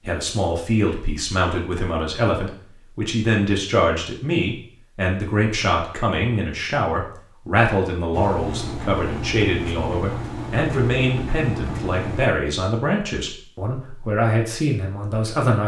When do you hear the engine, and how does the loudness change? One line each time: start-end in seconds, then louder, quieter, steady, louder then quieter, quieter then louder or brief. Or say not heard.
8.1-12.3 steady.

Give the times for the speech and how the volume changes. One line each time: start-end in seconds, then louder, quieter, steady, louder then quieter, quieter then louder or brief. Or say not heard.
0.0-15.6 steady.